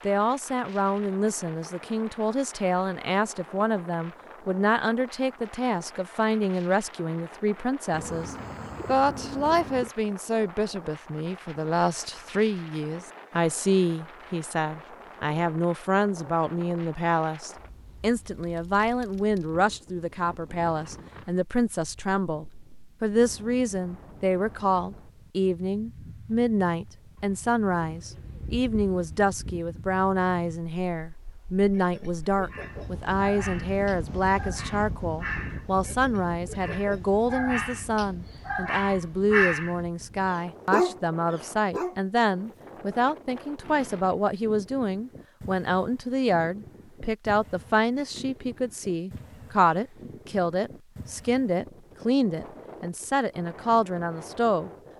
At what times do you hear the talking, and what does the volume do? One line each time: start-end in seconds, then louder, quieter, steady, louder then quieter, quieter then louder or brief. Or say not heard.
0.1-54.7 steady.